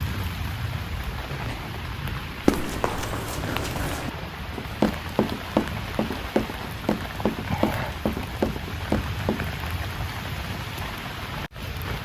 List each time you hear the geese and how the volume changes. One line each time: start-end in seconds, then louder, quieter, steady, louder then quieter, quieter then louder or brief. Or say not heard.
not heard.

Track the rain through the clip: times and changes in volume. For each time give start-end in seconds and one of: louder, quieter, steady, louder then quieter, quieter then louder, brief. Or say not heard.
0.0-11.9 steady.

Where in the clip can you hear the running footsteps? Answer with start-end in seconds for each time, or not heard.
2.5-9.4.